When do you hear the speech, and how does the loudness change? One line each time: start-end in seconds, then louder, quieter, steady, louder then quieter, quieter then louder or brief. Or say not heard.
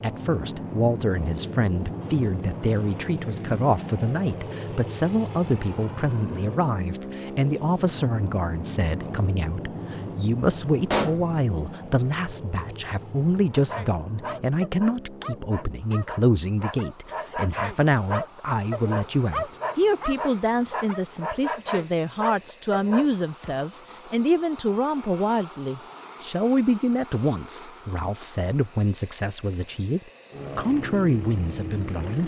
0.0-32.2 steady.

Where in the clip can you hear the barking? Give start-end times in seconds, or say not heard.
13.5-23.1.